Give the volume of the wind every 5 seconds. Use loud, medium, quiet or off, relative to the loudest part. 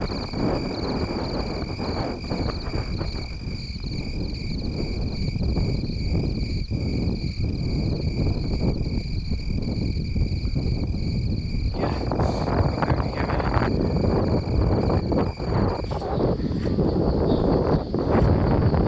medium, medium, loud, loud.